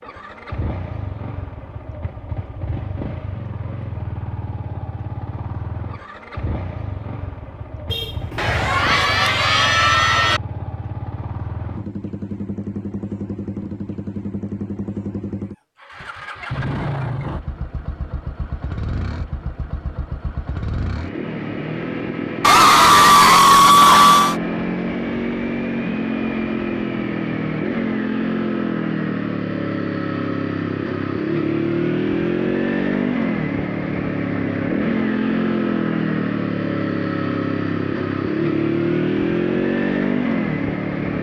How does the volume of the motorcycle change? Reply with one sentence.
The loudness of the motorcycle goes up.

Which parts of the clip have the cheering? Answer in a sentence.
The cheering can be heard from 8.3 to 10.4 s and from 22.4 to 24.4 s.